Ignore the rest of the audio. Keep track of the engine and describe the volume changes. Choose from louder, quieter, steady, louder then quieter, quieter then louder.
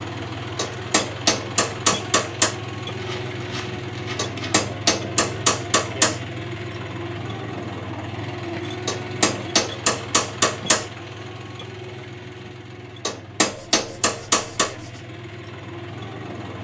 quieter.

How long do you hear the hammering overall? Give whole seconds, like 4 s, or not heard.
8 s.